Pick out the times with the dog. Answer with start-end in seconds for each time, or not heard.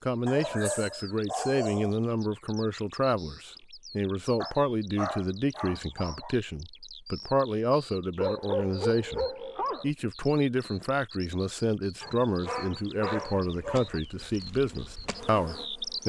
0.2-2.0, 4.4-6.3, 8.2-9.9, 12.0-14.0.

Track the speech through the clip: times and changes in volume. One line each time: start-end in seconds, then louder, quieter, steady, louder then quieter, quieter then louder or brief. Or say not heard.
0.0-16.0 steady.